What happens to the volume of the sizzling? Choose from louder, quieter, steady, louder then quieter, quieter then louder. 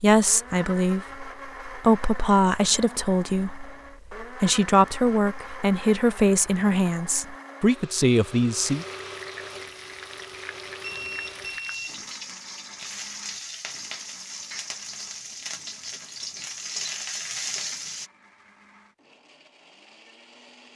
louder.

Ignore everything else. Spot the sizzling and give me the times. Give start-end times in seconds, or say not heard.
8.6-18.1.